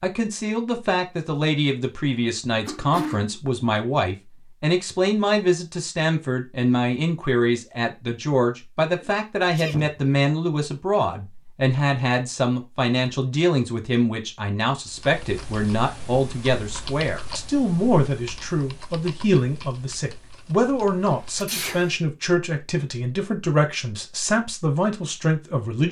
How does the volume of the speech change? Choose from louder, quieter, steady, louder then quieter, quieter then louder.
steady.